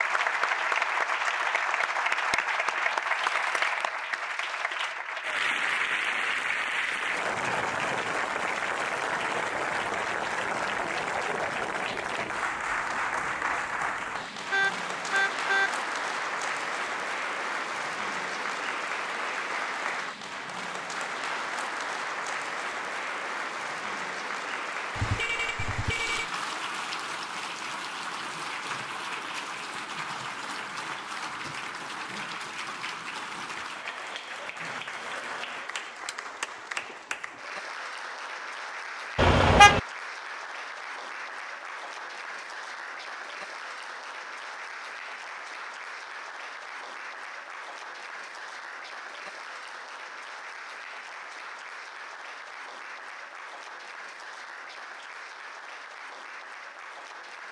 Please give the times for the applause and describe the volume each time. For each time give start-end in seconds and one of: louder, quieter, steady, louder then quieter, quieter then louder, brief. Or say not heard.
0.0-57.4 quieter.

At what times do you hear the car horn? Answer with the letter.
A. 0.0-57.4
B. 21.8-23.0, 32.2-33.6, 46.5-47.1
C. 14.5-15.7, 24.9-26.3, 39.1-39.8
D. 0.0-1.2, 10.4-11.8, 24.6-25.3
C.